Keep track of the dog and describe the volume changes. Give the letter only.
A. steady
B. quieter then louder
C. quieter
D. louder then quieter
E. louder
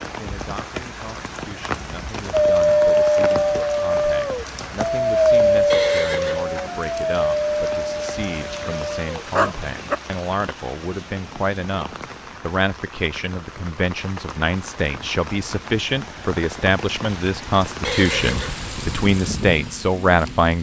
C.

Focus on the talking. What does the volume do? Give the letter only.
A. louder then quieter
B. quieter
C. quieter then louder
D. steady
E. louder
E.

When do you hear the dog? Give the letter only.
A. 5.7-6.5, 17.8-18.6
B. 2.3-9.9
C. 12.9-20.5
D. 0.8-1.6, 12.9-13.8
B.